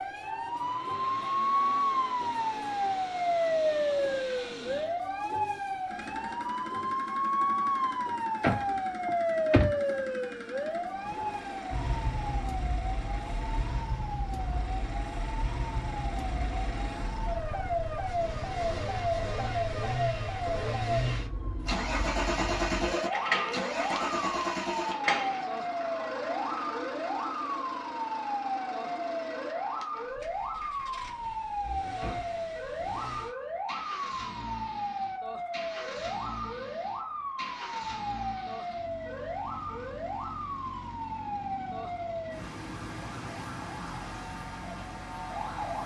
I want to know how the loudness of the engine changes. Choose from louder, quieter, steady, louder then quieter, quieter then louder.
louder then quieter.